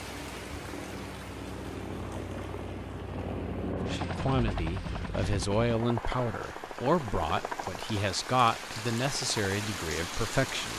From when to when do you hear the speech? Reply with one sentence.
You can hear the speech from 3.8 to 10.7 s.